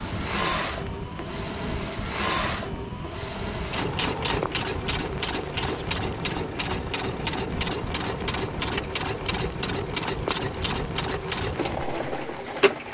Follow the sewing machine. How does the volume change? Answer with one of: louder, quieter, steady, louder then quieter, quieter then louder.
steady.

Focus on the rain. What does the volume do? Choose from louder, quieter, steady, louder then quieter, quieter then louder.
steady.